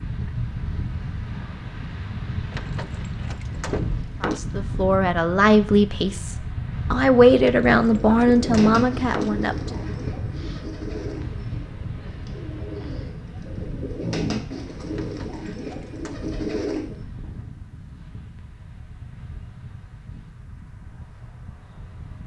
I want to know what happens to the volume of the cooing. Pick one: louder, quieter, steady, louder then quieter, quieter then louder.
quieter then louder.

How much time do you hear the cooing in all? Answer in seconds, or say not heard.
9 s.